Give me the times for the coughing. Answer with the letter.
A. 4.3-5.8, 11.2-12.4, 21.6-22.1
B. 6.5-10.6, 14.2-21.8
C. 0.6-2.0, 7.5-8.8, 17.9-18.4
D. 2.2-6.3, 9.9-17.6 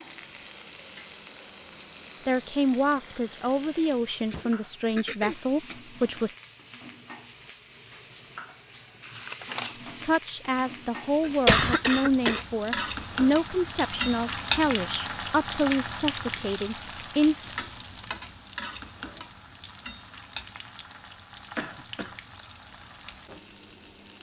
A.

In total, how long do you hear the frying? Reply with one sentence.
The frying can be heard for 24 seconds in total.